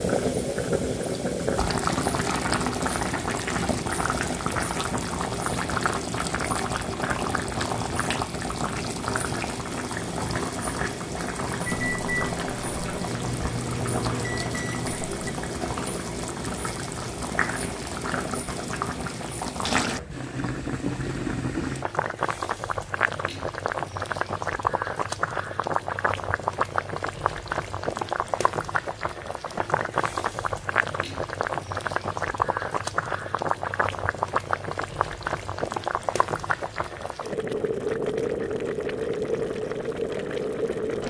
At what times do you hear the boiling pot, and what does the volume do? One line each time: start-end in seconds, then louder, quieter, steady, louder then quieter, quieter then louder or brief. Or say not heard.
0.0-41.0 steady.